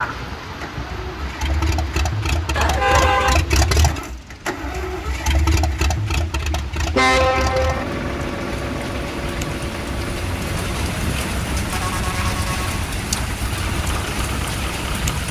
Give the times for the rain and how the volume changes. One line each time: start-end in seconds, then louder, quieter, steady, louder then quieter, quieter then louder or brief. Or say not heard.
0.0-15.2 quieter then louder.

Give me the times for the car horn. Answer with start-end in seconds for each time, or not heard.
2.5-3.5, 7.0-7.8, 10.9-12.8.